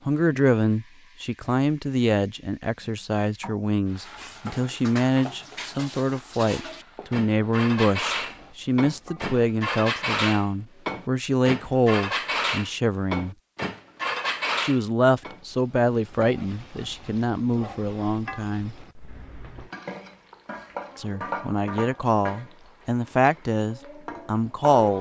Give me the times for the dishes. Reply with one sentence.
The dishes can be heard from 4.0 to 15.4 s.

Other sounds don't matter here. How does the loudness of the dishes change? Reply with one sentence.
The volume of the dishes goes up.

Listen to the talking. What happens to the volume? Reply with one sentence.
The loudness of the talking stays about the same.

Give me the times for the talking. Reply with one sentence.
The talking can be heard from 0.1 to 13.3 s, from 14.6 to 18.8 s and from 20.9 to 24.9 s.